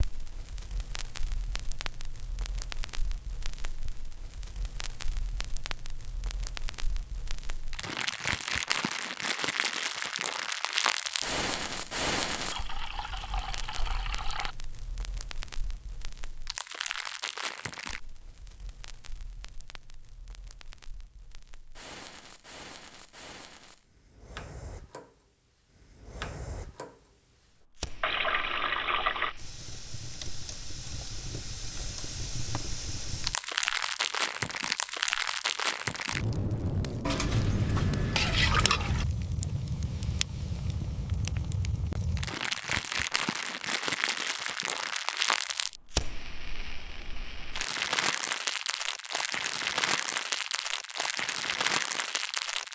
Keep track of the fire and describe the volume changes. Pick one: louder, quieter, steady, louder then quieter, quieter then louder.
quieter then louder.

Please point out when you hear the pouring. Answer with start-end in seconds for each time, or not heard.
12.5-14.6, 28.0-29.4, 37.0-39.0.